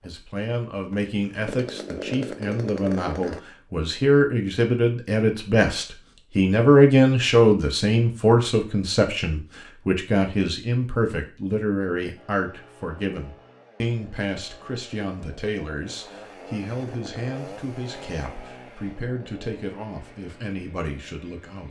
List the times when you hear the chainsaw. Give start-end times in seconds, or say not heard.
0.0-3.4, 12.2-21.6.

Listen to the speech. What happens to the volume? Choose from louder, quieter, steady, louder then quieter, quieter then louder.
louder then quieter.